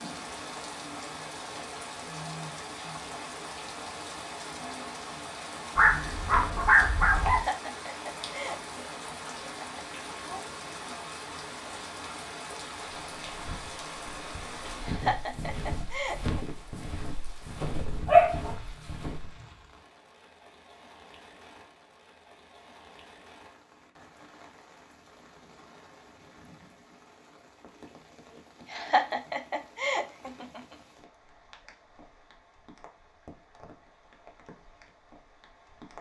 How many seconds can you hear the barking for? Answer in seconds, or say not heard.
3 s.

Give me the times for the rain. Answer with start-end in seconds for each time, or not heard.
0.0-35.9.